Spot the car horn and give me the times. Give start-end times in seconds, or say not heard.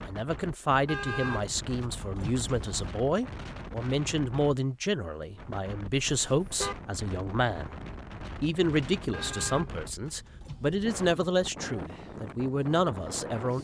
0.8-2.9, 6.1-6.8, 9.1-10.9.